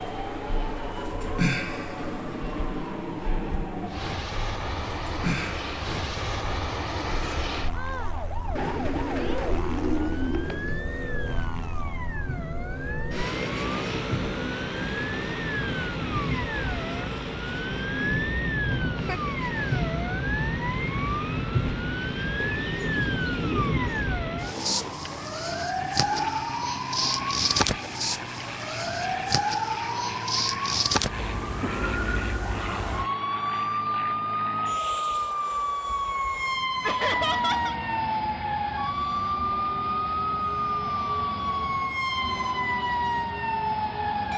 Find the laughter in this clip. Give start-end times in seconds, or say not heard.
18.7-19.2, 36.8-37.8.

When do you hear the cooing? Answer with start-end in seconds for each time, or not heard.
8.6-10.8, 22.6-23.9.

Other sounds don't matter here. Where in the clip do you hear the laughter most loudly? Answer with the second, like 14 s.
37 s.